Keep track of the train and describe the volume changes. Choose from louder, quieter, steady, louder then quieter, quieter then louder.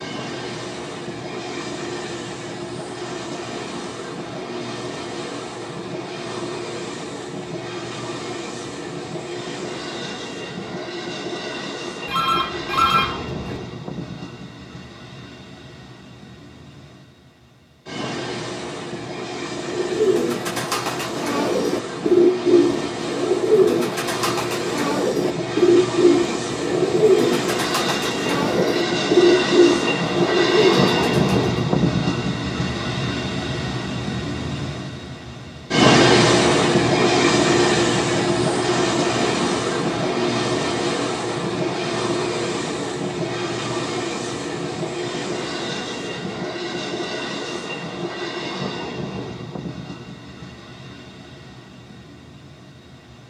louder then quieter.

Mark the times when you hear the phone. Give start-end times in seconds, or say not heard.
12.1-13.6.